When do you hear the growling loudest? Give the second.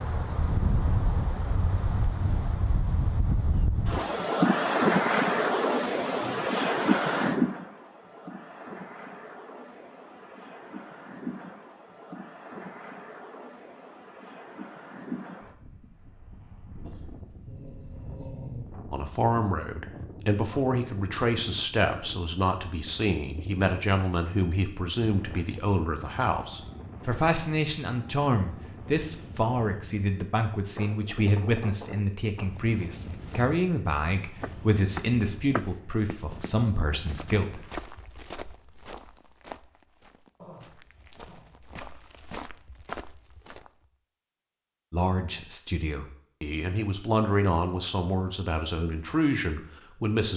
18 s.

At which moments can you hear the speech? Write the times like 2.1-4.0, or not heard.
18.9-37.6, 44.9-50.3.